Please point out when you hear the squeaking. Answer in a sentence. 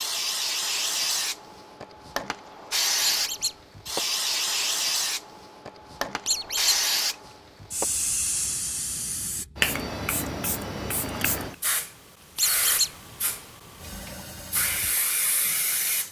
You can hear the squeaking from 3.0 to 3.5 s, from 6.2 to 6.8 s and from 12.3 to 12.9 s.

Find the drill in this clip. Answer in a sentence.
The drill can be heard from 13.8 to 16.0 s.